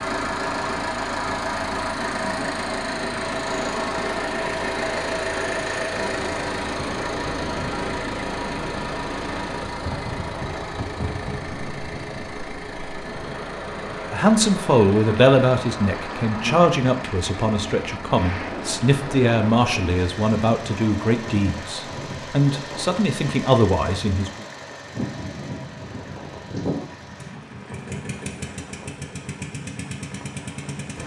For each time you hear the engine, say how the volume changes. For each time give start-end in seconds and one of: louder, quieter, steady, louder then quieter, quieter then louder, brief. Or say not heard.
0.0-31.0 quieter.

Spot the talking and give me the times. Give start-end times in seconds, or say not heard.
14.1-24.4.